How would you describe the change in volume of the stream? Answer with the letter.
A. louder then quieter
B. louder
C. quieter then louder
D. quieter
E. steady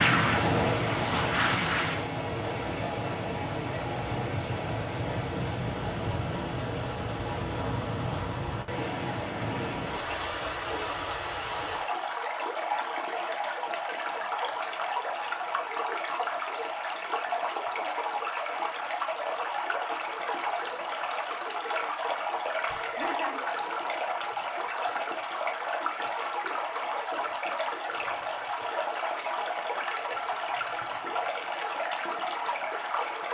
E.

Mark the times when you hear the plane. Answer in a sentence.
The plane can be heard from 0.0 to 2.0 s.